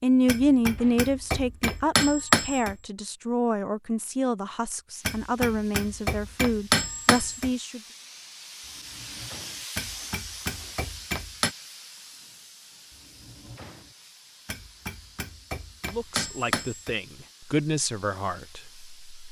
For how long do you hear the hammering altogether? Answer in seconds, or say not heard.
9 s.